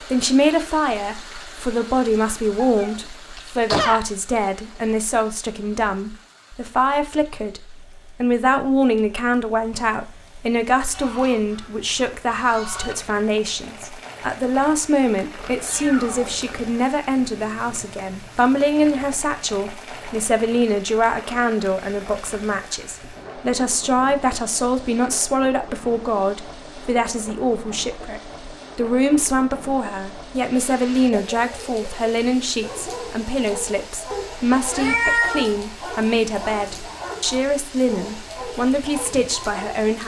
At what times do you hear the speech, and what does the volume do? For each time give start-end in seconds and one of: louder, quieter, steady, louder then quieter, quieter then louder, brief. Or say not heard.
0.1-40.0 steady.